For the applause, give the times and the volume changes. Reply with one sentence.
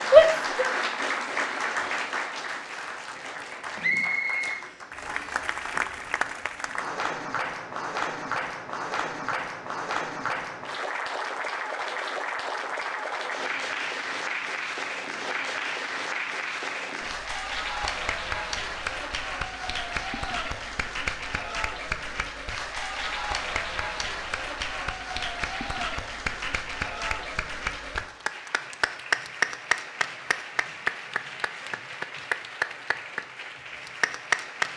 You can hear the applause from 0.0 to 34.7 s, at a steady volume.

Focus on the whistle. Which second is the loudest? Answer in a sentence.
The volume of the whistle peaks at 4 seconds.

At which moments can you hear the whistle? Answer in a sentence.
The whistle can be heard from 3.8 to 5.4 s.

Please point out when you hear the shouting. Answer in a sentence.
You can hear the shouting from 0.1 to 0.7 s.